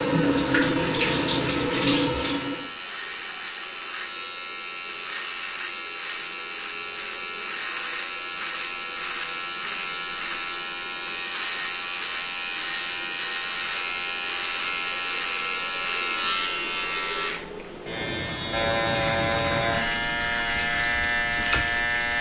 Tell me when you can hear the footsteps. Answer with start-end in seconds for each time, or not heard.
not heard.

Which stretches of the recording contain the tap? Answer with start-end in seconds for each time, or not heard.
0.0-2.7, 18.9-22.1.